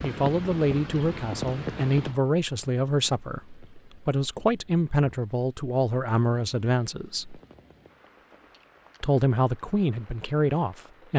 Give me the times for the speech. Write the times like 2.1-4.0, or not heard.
0.0-7.4, 9.0-11.1.